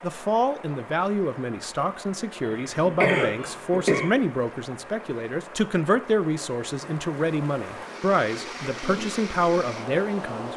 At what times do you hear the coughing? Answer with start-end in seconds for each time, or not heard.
2.4-4.1.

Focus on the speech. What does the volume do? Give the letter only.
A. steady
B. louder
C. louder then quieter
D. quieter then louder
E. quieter
A.